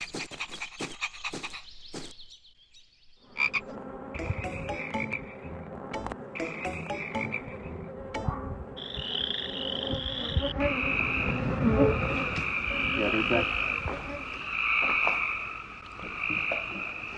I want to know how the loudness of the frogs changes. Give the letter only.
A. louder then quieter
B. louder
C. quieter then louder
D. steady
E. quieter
B.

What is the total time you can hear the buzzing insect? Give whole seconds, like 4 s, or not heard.
11 s.